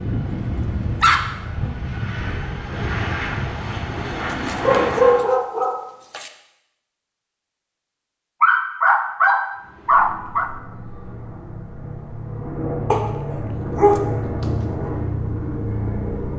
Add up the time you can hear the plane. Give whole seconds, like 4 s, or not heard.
12 s.